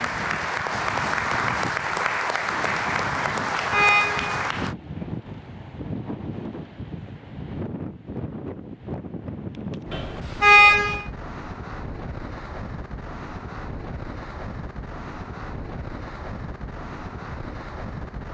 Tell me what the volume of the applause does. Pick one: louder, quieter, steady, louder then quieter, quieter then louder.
steady.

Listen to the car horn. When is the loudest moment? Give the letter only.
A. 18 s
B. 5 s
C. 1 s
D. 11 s
D.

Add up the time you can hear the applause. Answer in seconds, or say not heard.
5 s.